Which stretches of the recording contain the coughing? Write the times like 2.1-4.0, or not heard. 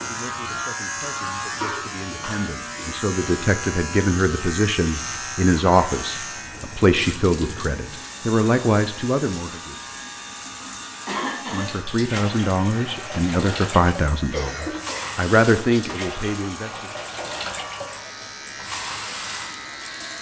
1.6-2.5, 11.1-11.7, 14.3-15.2.